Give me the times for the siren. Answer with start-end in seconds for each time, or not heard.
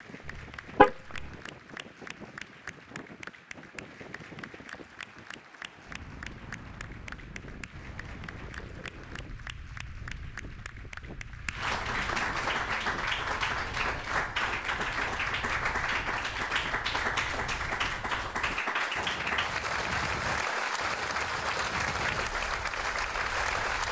not heard.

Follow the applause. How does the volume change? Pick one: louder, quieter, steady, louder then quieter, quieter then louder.
louder.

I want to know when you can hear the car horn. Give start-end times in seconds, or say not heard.
0.2-1.3.